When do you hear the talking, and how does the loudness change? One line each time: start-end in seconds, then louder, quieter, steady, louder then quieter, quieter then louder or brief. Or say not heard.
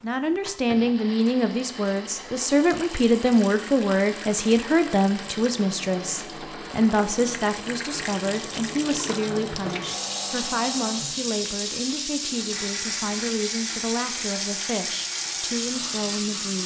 0.0-16.6 quieter.